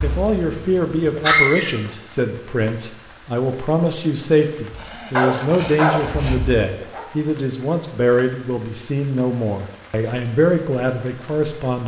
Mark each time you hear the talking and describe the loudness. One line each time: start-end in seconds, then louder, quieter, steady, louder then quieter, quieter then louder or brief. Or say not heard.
0.0-11.8 steady.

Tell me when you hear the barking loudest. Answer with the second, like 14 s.
1 s.